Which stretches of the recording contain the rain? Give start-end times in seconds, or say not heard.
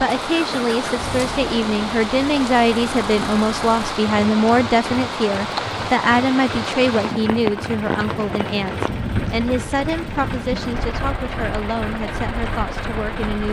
0.0-13.4.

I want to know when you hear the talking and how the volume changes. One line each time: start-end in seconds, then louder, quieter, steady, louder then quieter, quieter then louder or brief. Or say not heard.
0.0-13.4 quieter.